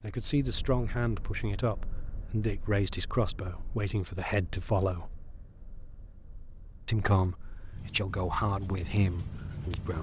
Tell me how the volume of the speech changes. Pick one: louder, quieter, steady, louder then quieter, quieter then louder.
steady.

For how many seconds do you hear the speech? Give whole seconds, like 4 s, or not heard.
8 s.